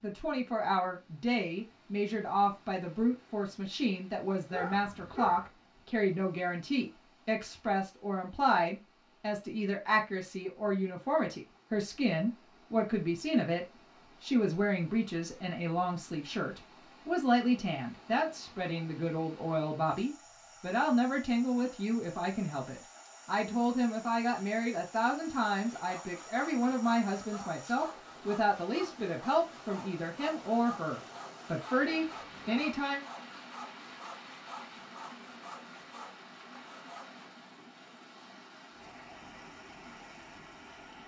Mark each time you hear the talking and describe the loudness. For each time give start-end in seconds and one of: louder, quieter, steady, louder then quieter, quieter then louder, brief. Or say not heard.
0.0-33.0 steady.